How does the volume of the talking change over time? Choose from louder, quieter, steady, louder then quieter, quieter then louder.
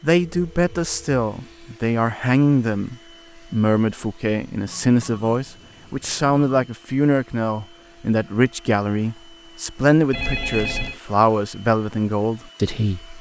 steady.